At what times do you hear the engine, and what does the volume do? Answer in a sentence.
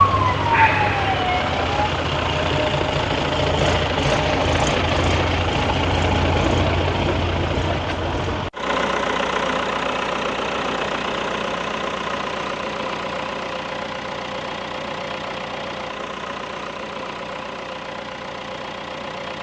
You can hear the engine from 0.0 to 19.3 s, getting quieter.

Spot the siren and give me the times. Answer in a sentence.
The siren can be heard from 0.0 to 1.6 s.